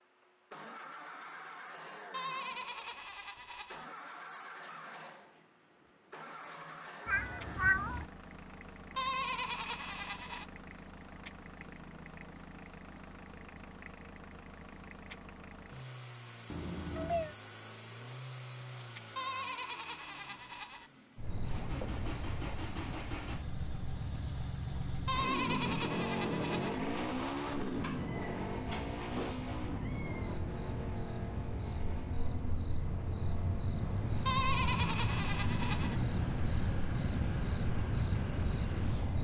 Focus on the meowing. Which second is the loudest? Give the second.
8 s.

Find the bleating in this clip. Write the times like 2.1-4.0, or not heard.
2.1-3.9, 8.9-10.4, 19.1-20.9, 25.1-26.8, 34.2-36.0.